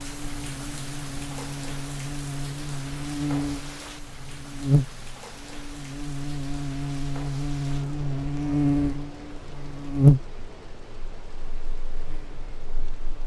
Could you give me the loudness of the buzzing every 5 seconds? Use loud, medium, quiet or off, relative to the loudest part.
medium, medium, loud.